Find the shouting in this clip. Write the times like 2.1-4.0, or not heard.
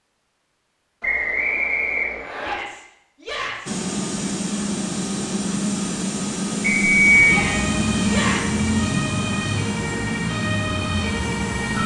2.4-3.8, 7.2-8.7.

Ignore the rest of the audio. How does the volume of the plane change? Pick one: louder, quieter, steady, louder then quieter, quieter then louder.
quieter.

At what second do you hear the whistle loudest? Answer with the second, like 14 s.
7 s.